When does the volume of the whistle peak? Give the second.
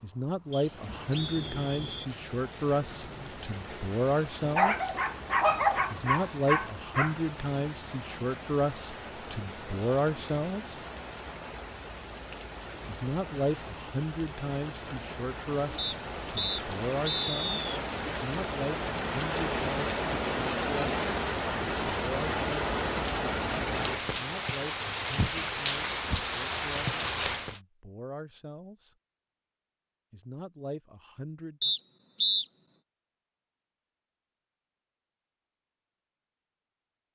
32 s.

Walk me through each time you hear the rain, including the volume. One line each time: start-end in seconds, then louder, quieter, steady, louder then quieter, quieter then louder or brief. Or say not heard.
0.0-27.6 louder.